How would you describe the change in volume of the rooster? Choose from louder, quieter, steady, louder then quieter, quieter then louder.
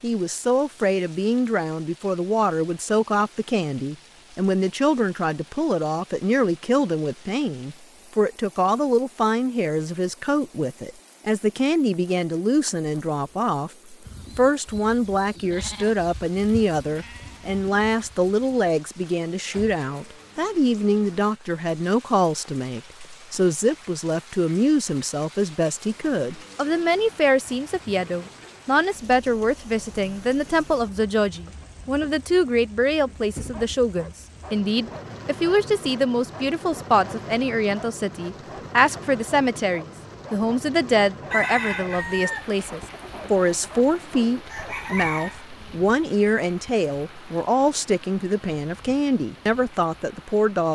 quieter then louder.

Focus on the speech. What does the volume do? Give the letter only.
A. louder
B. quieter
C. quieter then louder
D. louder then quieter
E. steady
E.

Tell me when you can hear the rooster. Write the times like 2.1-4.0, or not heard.
41.3-45.5.